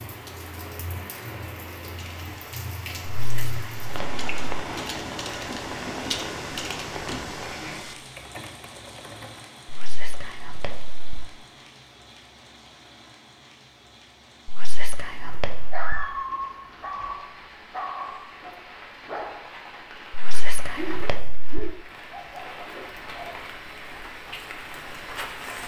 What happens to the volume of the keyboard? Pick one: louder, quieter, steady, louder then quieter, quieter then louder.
louder then quieter.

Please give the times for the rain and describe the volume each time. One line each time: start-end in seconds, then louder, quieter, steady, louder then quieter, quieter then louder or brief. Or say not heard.
0.0-25.6 quieter then louder.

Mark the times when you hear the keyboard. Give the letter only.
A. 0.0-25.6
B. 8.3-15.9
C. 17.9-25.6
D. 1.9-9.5
D.